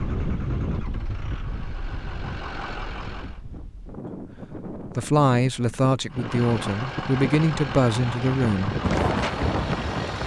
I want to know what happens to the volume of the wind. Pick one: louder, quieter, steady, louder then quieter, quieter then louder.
quieter then louder.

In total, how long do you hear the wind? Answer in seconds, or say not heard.
10 s.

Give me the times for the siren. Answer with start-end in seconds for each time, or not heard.
not heard.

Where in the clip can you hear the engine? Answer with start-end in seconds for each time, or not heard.
0.0-3.4, 6.1-10.2.